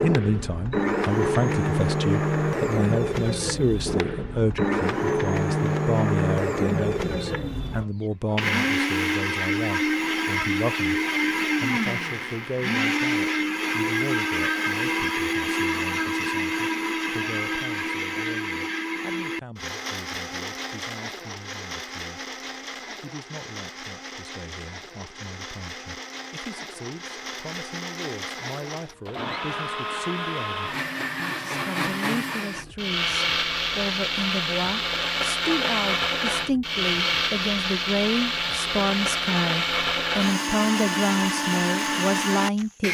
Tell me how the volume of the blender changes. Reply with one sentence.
The loudness of the blender goes down, then up.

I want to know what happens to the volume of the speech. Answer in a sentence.
The volume of the speech goes down, then up.